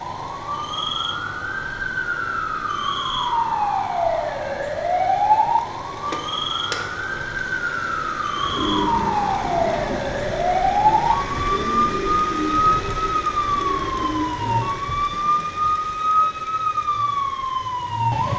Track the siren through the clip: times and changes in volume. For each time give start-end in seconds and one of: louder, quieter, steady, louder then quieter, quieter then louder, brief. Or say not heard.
0.0-18.3 steady.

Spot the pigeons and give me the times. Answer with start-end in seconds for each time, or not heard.
8.3-14.8.